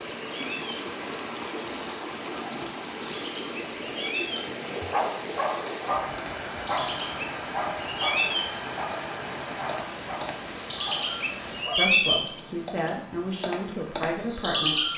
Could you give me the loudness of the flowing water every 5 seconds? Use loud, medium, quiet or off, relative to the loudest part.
loud, loud, medium.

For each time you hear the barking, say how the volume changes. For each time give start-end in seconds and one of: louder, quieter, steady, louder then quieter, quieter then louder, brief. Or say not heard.
4.9-11.9 quieter.